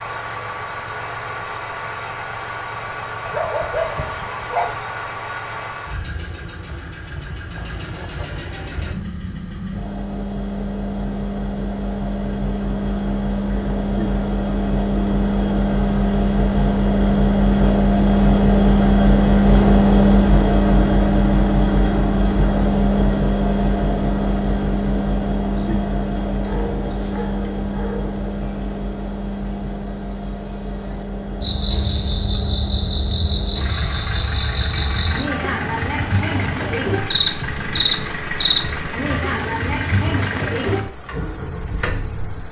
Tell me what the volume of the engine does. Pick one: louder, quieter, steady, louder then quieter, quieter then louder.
louder then quieter.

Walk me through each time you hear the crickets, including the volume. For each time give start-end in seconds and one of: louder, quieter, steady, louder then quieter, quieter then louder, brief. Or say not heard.
8.2-42.4 quieter then louder.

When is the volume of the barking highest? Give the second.
4 s.